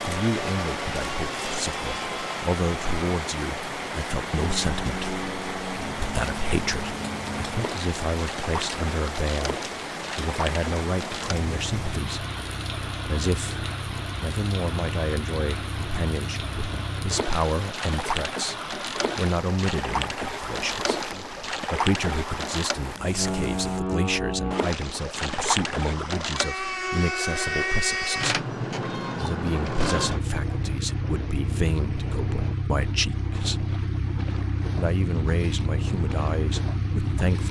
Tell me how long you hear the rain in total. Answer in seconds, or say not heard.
24 s.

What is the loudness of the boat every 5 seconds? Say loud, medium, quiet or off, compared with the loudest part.
medium, medium, medium, medium, loud, loud, loud, loud.